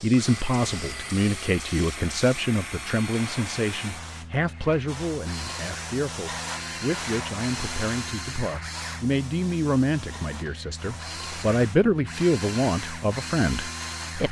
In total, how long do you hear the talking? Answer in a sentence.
You can hear the talking for 14 seconds altogether.